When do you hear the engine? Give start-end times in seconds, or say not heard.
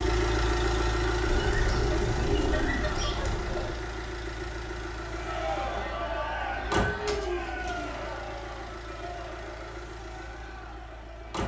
0.0-11.4.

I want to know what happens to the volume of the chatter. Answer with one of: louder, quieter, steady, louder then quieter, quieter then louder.
quieter.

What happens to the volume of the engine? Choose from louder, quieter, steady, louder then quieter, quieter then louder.
quieter.